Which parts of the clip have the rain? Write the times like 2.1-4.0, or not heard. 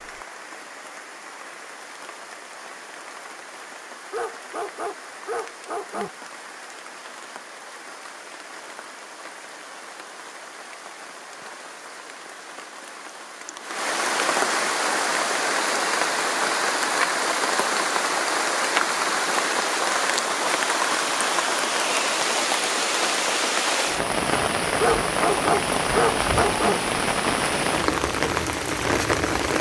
0.0-29.5.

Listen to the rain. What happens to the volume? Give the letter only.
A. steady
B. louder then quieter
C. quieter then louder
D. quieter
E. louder
E.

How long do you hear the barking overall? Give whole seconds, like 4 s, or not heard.
4 s.